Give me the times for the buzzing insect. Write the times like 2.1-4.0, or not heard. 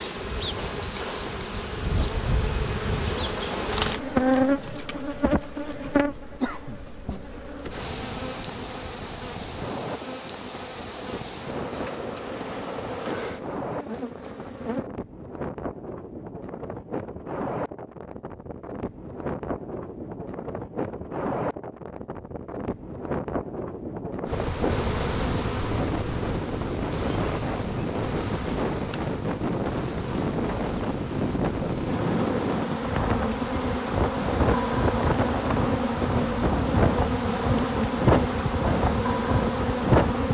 0.0-14.9, 24.2-40.3.